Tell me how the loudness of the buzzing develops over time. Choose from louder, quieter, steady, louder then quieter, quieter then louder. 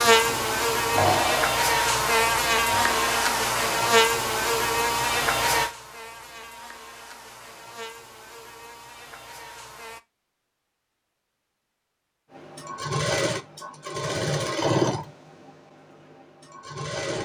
quieter.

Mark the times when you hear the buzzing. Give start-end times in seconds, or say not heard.
0.0-10.0.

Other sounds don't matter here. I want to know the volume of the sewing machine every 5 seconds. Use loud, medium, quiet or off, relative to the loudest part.
loud, off, loud, medium.